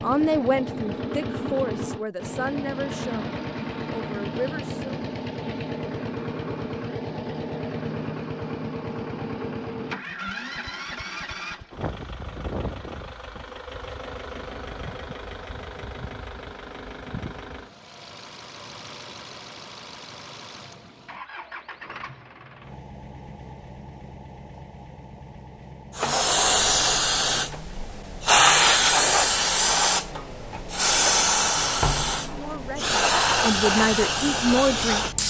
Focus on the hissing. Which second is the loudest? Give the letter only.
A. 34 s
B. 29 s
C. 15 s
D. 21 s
B.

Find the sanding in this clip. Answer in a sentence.
You can't hear the sanding here.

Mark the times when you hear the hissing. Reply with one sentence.
You can hear the hissing from 25.9 to 35.2 s.